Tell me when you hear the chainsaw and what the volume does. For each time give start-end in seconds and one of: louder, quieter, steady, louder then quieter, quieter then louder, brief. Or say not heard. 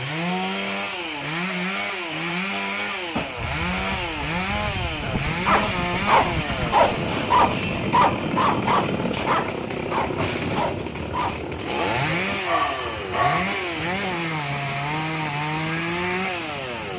0.0-16.9 steady.